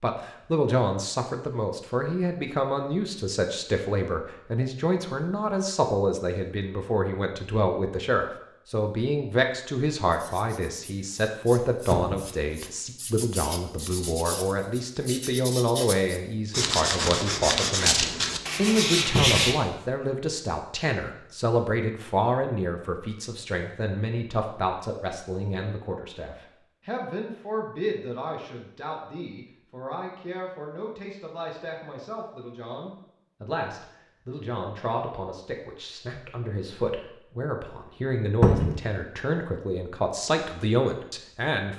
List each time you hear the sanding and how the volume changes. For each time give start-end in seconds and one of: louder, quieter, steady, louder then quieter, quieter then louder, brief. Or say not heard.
10.1-19.6 louder.